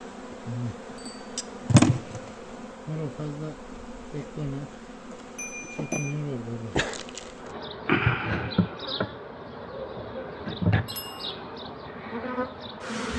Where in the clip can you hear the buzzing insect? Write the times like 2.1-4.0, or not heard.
0.0-13.1.